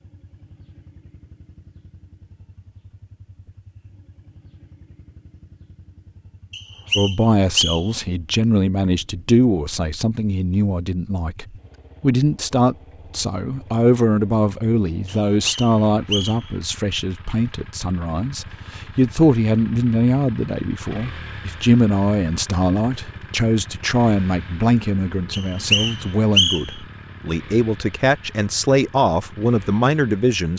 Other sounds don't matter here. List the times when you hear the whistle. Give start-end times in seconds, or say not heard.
6.5-8.0, 15.1-16.5, 25.3-26.8.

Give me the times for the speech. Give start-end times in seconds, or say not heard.
7.0-30.5.